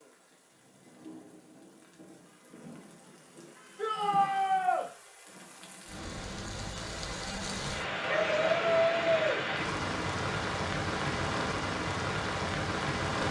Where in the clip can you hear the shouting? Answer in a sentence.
You can hear the shouting from 3.8 to 4.8 s and from 8.1 to 9.3 s.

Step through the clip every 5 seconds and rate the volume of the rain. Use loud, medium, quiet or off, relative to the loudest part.
quiet, loud, loud.